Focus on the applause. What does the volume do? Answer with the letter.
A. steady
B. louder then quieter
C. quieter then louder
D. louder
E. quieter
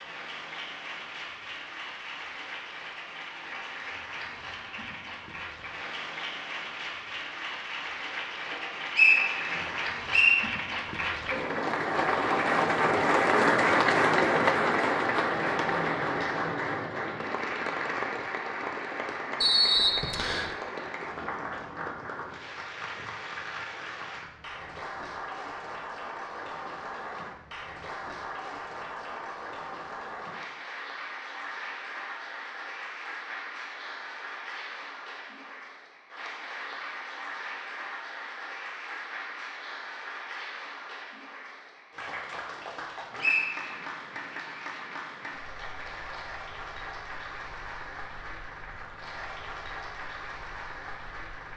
B.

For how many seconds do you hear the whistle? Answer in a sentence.
You can hear the whistle for 3 seconds altogether.